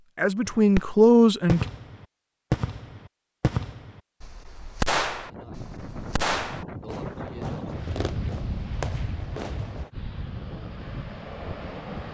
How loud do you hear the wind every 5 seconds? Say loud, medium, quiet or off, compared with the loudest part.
off, loud, loud.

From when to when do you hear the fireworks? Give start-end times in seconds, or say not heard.
0.5-9.9.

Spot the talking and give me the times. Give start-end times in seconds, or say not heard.
0.1-1.6.